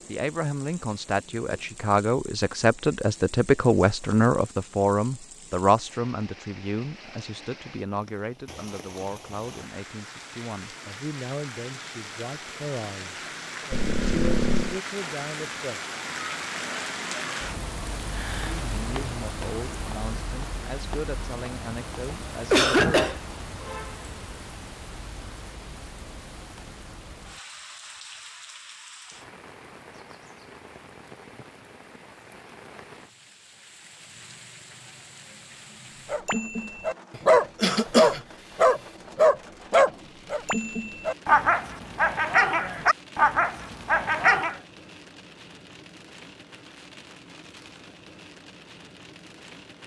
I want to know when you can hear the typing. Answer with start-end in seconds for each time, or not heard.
not heard.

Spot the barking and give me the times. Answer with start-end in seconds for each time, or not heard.
36.1-44.6.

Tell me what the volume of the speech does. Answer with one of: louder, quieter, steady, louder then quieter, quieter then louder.
quieter.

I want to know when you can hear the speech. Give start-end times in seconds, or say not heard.
0.1-15.8, 18.6-22.9.